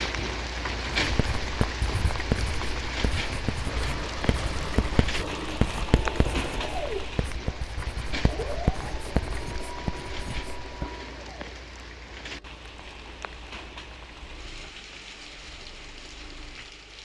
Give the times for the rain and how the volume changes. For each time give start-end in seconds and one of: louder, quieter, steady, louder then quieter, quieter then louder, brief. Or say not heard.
0.0-16.9 quieter.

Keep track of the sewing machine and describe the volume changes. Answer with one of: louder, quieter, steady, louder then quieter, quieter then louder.
quieter.